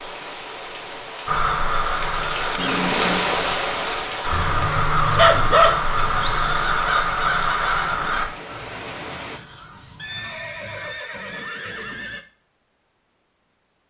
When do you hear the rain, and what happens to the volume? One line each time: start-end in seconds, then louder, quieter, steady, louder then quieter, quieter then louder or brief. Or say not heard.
0.0-9.4 louder then quieter.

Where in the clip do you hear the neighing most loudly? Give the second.
3 s.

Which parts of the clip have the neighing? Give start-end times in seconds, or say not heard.
2.5-3.6, 9.9-12.2.